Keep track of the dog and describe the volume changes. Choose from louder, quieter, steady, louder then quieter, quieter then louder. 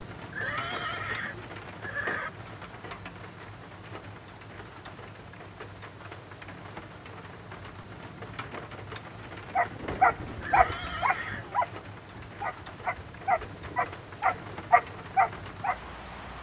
quieter then louder.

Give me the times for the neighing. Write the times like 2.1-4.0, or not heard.
0.3-2.3, 10.4-11.5.